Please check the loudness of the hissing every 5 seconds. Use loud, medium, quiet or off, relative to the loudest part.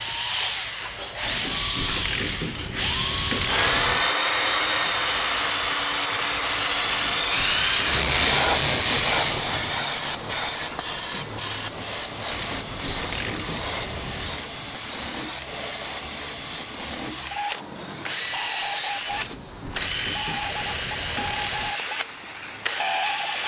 medium, loud, medium, quiet, quiet.